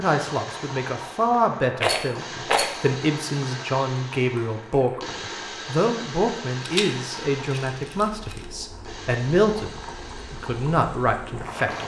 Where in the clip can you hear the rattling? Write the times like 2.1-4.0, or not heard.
1.8-2.8, 6.6-8.4.